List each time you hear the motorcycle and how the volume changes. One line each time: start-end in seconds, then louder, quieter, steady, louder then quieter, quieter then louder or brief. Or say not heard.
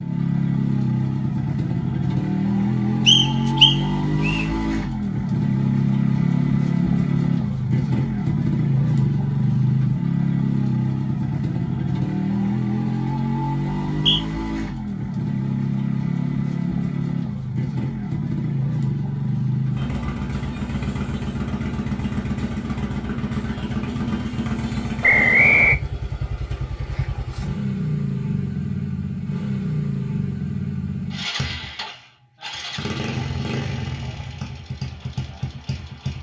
0.0-36.1 quieter.